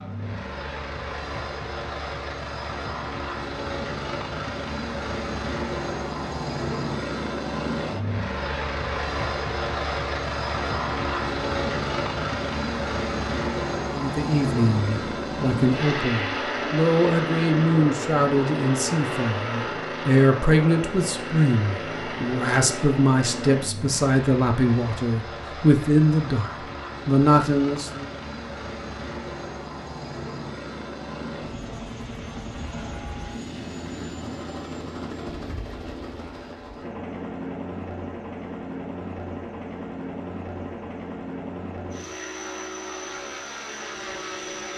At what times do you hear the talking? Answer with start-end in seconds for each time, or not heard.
13.9-28.1.